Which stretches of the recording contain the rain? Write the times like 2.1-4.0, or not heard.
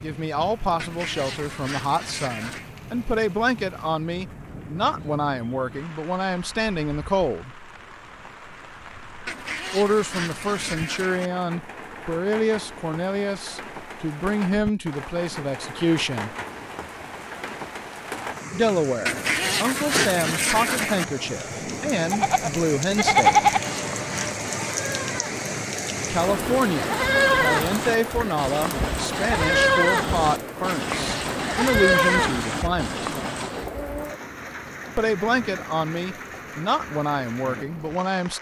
0.0-38.3.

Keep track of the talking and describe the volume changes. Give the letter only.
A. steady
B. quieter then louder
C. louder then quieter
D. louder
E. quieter
A.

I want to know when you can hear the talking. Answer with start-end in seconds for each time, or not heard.
0.0-7.5, 9.7-16.4, 18.5-23.5, 26.1-33.1, 35.0-38.3.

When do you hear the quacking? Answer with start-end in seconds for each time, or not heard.
0.8-2.7, 9.2-11.3, 19.1-21.1, 23.4-24.9, 30.8-32.7.